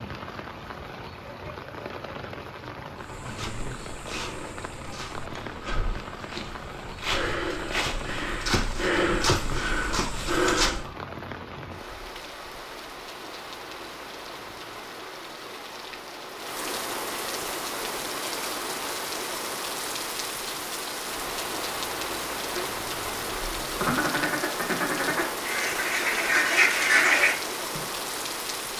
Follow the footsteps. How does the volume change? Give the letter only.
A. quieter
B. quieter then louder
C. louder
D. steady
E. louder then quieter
C.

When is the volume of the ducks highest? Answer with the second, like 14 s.
27 s.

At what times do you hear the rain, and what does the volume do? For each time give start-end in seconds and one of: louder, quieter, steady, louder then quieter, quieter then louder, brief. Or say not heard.
0.0-28.7 louder.